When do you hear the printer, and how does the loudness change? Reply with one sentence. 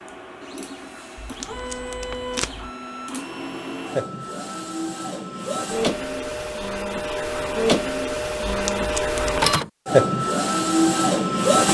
You can hear the printer from 0.0 to 11.7 s, getting louder.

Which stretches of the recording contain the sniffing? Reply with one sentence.
You can't hear the sniffing here.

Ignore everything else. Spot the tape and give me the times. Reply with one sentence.
The tape can be heard from 1.1 to 2.7 s and from 8.4 to 9.5 s.